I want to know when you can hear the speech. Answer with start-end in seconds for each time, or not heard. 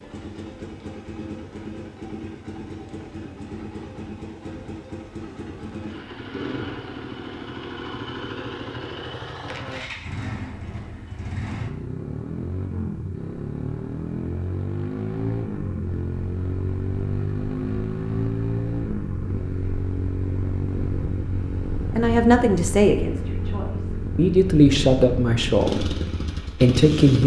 21.9-27.2.